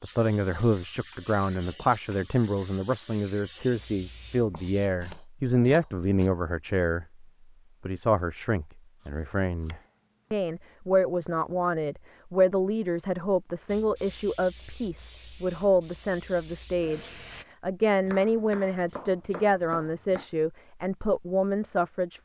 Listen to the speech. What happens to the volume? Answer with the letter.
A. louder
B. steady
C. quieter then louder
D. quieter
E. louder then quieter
B.